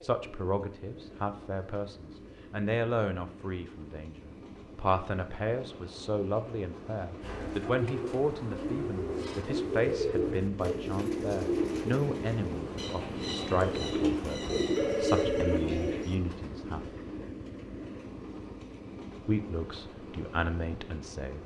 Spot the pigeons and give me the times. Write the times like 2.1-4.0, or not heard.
7.2-16.1.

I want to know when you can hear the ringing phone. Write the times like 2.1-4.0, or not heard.
14.8-15.7.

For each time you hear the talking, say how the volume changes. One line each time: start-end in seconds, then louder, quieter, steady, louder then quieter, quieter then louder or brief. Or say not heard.
0.0-16.9 steady
19.2-21.4 brief.